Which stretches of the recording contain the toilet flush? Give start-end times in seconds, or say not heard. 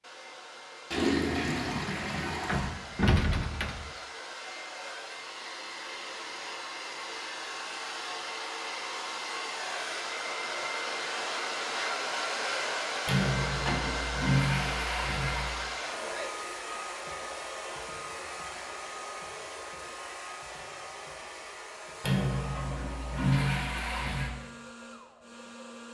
0.9-2.7, 13.1-15.6, 22.0-24.3.